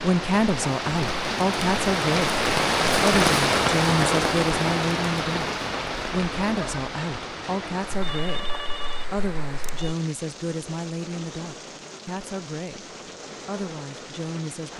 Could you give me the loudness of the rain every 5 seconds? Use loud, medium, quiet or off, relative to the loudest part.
loud, medium, quiet.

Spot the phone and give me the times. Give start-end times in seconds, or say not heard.
7.9-9.9.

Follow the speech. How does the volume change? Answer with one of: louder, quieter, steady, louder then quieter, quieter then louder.
quieter.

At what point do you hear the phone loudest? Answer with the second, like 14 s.
8 s.